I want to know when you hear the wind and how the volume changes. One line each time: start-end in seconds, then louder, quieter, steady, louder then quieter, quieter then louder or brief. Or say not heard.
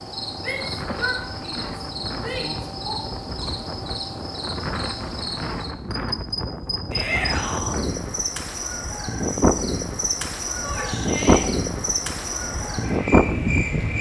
0.1-13.9 louder.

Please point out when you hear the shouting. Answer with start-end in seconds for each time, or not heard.
0.4-3.0, 6.9-7.8, 10.6-11.4.